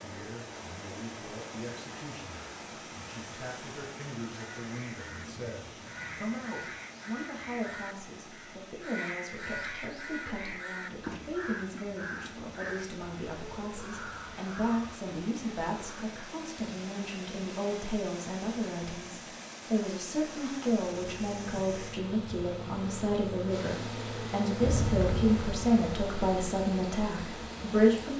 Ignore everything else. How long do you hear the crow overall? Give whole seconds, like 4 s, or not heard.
12 s.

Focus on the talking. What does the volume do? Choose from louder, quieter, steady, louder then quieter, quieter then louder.
louder.